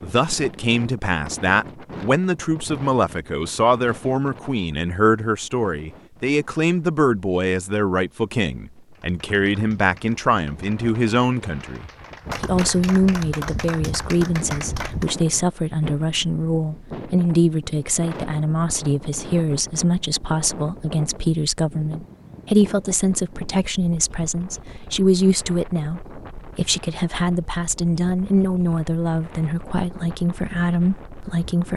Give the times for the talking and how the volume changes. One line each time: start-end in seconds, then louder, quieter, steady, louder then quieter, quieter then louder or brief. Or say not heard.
0.0-31.7 steady.